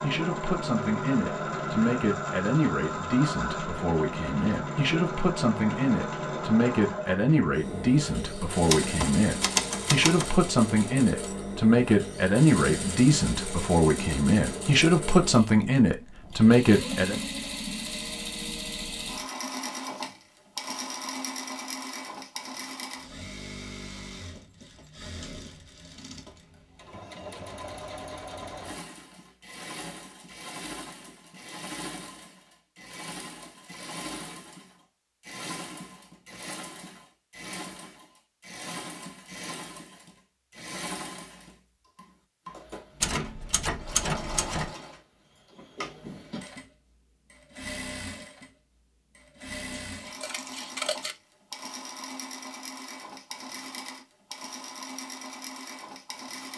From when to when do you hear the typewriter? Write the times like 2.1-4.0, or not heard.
8.7-10.3, 43.0-44.8.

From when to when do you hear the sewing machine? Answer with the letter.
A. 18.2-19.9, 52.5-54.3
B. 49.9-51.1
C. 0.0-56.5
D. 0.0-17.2
C.